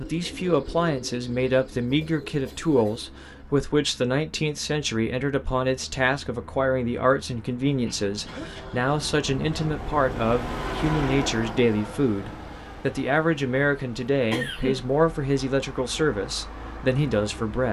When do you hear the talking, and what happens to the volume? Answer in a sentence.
The talking can be heard from 0.0 to 17.6 s, at a steady volume.